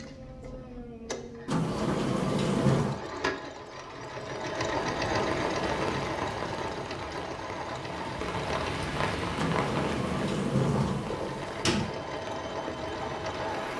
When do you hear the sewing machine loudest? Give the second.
5 s.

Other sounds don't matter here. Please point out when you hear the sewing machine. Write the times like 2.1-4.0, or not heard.
0.0-8.9, 11.0-13.7.